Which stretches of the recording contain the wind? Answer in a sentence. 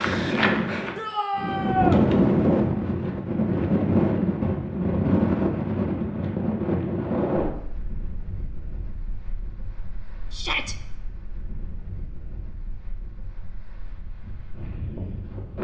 You can hear the wind from 0.0 to 15.5 s.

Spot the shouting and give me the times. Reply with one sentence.
You can hear the shouting from 0.9 to 2.0 s and from 10.3 to 10.8 s.